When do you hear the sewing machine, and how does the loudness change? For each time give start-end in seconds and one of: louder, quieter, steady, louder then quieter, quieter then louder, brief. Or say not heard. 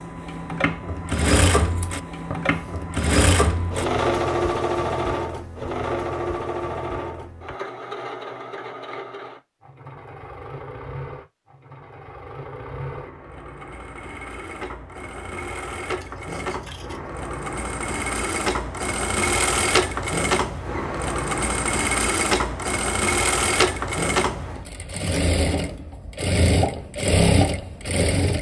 0.0-28.3 quieter then louder.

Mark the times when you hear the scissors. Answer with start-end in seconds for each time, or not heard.
1.6-2.9, 16.0-17.1, 25.0-25.8.